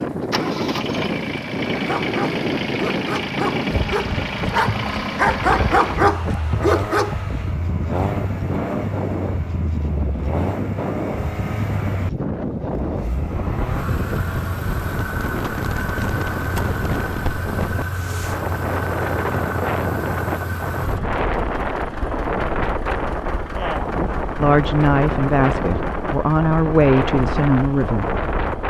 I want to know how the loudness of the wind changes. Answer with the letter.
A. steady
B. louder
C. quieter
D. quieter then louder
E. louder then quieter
A.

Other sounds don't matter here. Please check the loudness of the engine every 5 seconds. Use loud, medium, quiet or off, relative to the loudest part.
loud, loud, loud, loud, medium, medium.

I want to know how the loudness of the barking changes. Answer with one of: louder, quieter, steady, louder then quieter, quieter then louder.
louder.